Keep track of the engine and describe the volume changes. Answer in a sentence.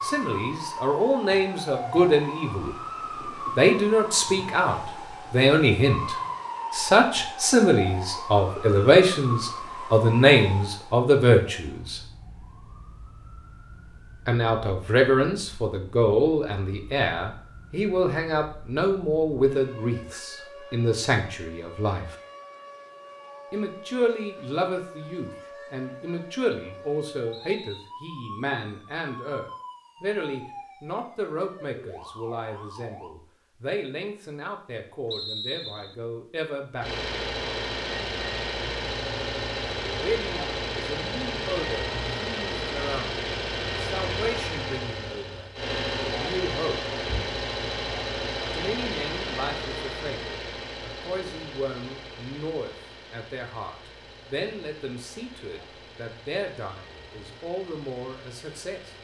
The loudness of the engine goes down.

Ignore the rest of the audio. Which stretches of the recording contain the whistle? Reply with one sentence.
You can hear the whistle from 27.3 to 27.9 s and from 35.1 to 36.0 s.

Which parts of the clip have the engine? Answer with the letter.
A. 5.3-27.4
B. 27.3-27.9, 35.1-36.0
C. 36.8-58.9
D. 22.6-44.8
C.